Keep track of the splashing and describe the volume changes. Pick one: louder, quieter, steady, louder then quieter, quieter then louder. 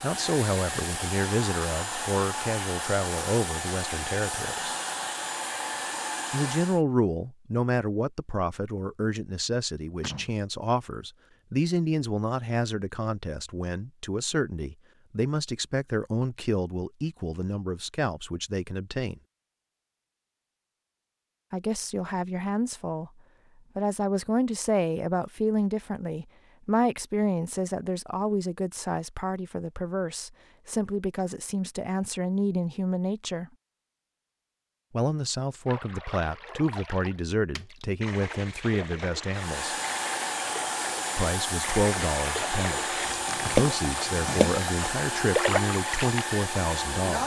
louder.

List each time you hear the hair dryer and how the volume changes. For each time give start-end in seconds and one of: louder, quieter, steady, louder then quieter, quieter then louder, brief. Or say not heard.
0.0-6.8 steady
39.4-47.2 steady.